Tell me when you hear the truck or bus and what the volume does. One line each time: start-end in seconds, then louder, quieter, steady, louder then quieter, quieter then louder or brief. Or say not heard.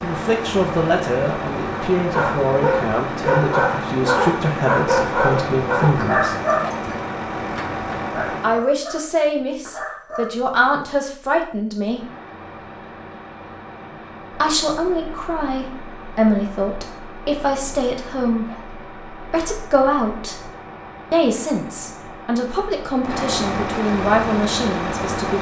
0.0-8.7 steady
11.8-25.3 louder.